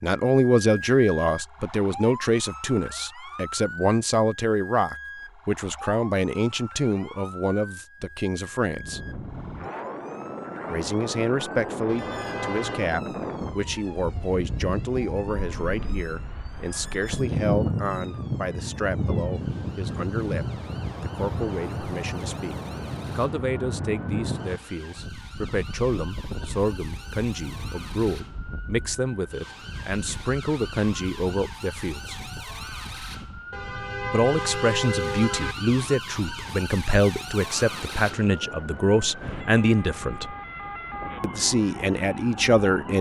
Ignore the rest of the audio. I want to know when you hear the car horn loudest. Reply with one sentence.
The loudest moment of the car horn is at 35 seconds.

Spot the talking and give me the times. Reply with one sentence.
You can hear the talking from 0.0 to 9.0 s, from 10.7 to 32.2 s, from 34.1 to 40.4 s and from 41.2 to 42.9 s.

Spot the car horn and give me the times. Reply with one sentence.
The car horn can be heard from 11.8 to 12.9 s and from 33.5 to 35.5 s.